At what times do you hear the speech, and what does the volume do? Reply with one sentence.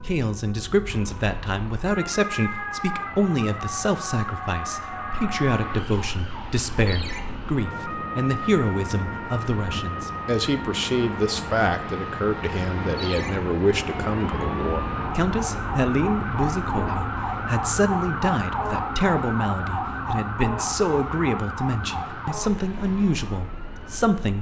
You can hear the speech from 0.0 to 24.3 s, at a steady volume.